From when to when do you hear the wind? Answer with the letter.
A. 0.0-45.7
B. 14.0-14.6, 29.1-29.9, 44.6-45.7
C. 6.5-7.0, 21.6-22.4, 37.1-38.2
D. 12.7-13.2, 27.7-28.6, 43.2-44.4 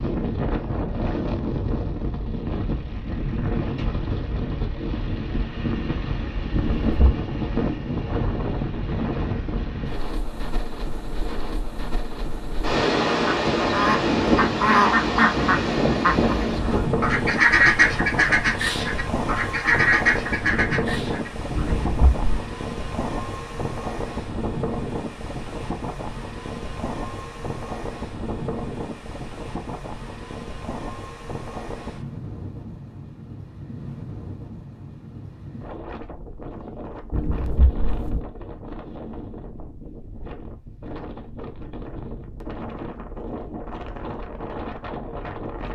A.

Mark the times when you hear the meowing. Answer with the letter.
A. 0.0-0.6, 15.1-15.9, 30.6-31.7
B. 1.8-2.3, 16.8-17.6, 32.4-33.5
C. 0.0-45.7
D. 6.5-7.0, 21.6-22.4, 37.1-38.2
D.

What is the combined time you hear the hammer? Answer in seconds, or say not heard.
not heard.